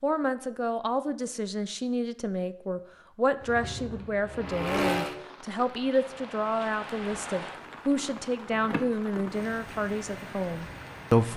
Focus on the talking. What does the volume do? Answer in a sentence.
The volume of the talking stays about the same.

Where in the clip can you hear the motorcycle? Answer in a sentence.
You can hear the motorcycle from 3.4 to 5.2 s.